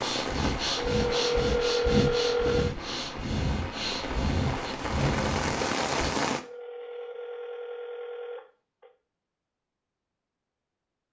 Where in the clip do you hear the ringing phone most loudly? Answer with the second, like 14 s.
2 s.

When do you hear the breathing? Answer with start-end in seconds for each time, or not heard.
0.0-6.1.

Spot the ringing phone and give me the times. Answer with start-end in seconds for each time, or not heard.
0.7-2.8, 6.3-8.9.